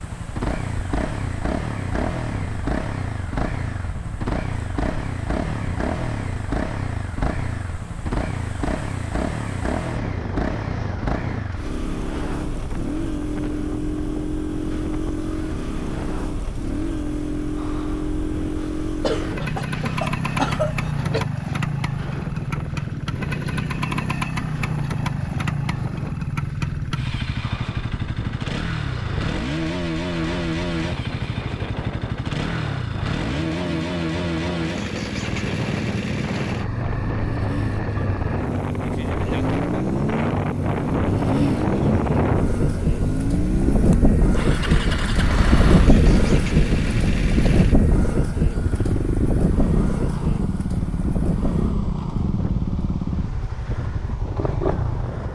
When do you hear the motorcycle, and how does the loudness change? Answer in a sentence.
The motorcycle can be heard from 0.0 to 55.2 s, at a steady volume.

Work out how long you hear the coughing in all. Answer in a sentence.
The coughing can be heard for 2 seconds in total.